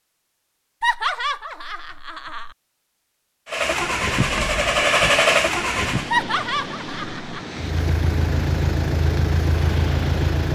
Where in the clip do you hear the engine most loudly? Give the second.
5 s.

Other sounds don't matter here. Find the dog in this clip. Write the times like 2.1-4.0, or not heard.
not heard.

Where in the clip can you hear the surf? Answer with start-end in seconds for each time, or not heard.
3.5-10.5.